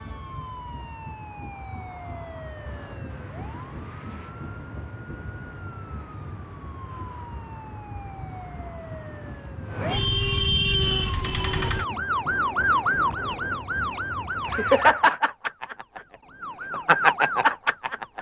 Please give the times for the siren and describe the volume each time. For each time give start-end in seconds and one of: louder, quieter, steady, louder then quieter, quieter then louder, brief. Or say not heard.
0.0-18.1 louder.